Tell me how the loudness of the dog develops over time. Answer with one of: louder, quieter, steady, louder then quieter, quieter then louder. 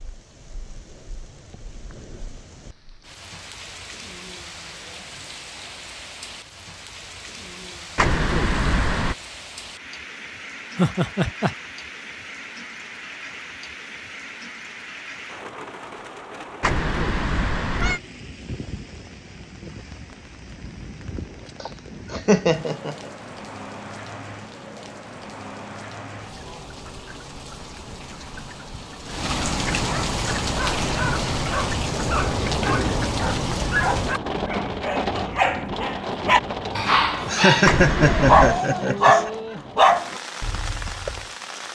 louder.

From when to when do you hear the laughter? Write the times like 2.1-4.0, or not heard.
10.8-11.6, 21.6-22.9, 37.0-39.3.